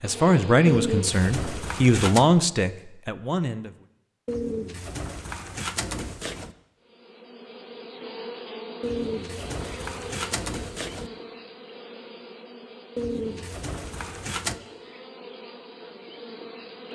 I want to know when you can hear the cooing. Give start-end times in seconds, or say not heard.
0.7-2.3, 4.2-6.5, 8.8-11.1, 12.9-14.6.